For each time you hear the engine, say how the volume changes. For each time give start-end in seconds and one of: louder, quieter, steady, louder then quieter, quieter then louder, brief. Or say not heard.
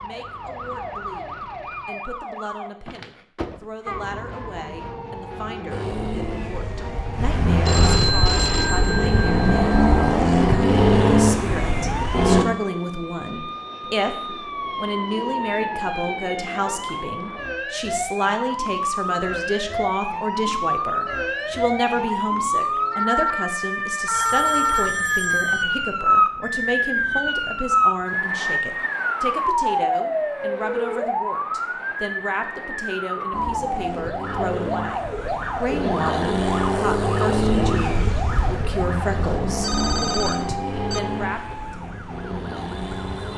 5.7-12.4 louder
33.3-43.3 louder then quieter.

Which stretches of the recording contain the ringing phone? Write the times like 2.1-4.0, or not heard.
7.7-10.2, 24.1-25.6, 39.6-41.0.